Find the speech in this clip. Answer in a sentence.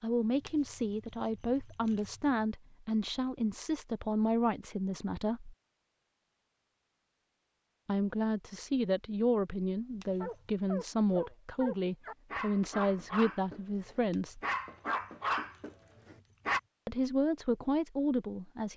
The speech can be heard from 0.0 to 5.5 s, from 7.8 to 14.4 s and from 16.9 to 18.7 s.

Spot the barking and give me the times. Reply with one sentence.
You can hear the barking from 10.2 to 16.6 s.